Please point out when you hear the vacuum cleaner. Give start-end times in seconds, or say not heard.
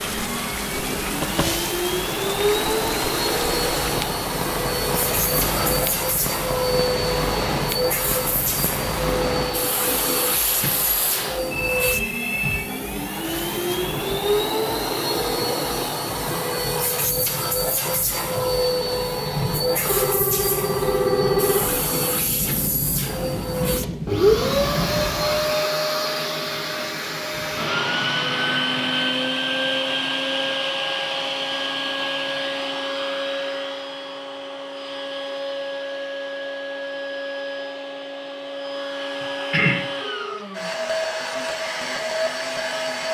0.0-43.0.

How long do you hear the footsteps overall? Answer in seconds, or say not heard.
not heard.